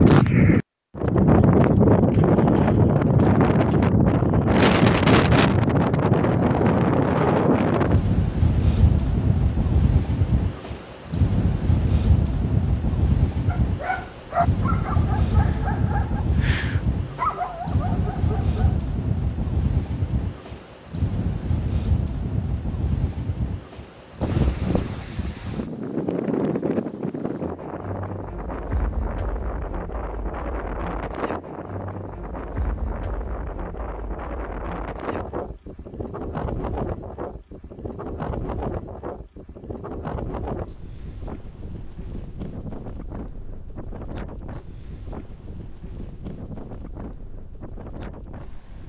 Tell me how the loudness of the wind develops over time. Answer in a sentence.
The volume of the wind goes down.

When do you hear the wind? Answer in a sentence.
The wind can be heard from 0.0 to 48.8 s.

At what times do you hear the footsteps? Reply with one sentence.
You can't hear the footsteps here.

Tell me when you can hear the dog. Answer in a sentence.
You can hear the dog from 13.4 to 18.8 s.